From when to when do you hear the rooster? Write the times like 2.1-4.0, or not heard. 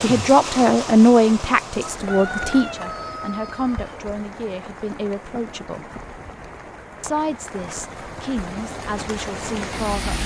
1.9-4.1.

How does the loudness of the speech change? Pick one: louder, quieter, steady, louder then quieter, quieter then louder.
quieter.